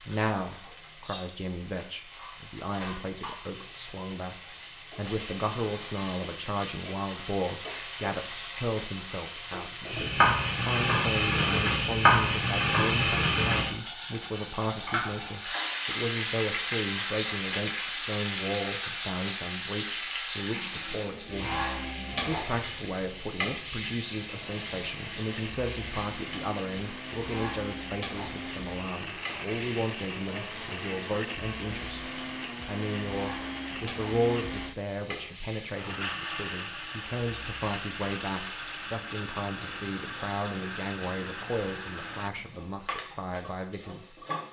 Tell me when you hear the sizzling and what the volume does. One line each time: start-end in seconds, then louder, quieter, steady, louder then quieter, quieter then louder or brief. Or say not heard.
0.0-44.4 louder then quieter.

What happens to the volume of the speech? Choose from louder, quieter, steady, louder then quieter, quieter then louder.
steady.